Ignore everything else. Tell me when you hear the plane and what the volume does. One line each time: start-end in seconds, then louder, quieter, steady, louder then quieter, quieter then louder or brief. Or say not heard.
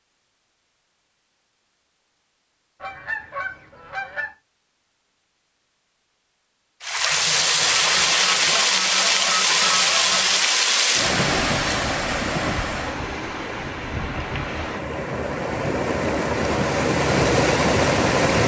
not heard.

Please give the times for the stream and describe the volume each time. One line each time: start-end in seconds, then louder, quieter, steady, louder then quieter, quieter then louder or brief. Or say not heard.
6.8-18.4 quieter then louder.